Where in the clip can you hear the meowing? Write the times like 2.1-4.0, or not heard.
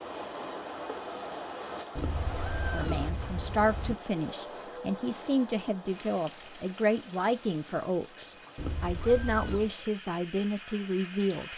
1.9-4.0, 8.6-9.8.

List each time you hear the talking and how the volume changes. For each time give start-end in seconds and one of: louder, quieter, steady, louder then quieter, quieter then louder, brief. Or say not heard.
2.7-11.5 steady.